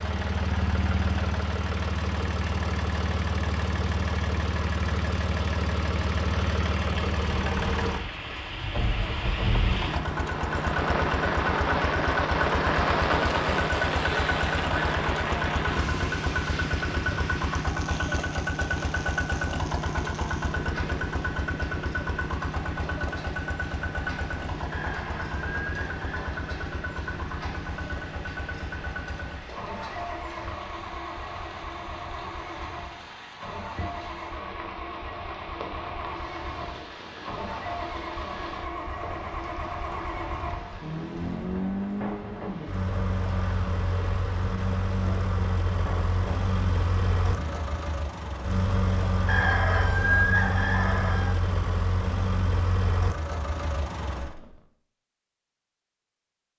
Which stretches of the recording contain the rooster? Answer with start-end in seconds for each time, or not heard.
24.7-26.6, 49.2-51.3.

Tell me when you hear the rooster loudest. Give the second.
50 s.